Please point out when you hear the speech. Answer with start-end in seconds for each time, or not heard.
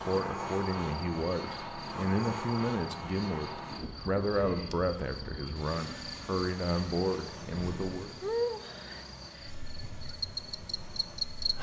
0.0-8.1.